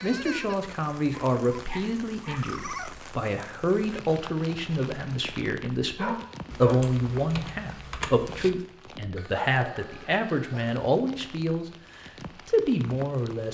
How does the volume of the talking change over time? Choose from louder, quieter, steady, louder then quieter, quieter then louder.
steady.